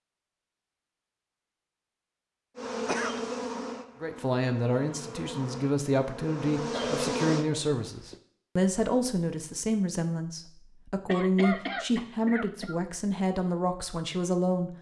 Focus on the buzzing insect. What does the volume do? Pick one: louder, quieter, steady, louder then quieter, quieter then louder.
quieter then louder.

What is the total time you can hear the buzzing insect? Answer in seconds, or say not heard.
5 s.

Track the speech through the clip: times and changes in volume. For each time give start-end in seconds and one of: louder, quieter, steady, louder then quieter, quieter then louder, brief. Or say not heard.
4.0-14.7 steady.